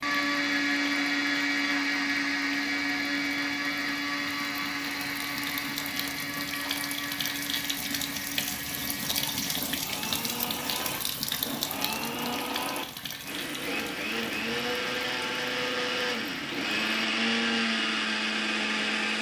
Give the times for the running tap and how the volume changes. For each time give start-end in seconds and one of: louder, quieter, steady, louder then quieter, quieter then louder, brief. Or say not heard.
0.0-17.0 louder then quieter.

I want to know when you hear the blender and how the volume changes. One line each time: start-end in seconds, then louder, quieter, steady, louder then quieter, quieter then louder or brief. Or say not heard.
0.0-19.1 quieter then louder.